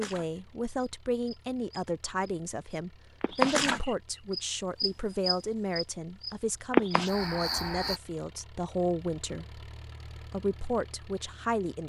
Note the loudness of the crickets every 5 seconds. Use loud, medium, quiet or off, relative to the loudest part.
loud, loud, off.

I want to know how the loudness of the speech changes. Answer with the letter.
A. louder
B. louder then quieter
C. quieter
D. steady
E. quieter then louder
D.